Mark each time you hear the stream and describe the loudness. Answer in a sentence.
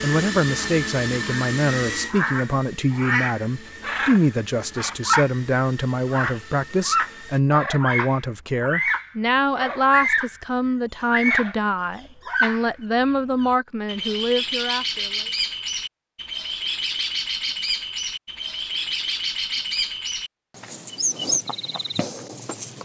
The stream can't be heard in this clip.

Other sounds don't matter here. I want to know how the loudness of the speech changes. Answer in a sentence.
The loudness of the speech stays about the same.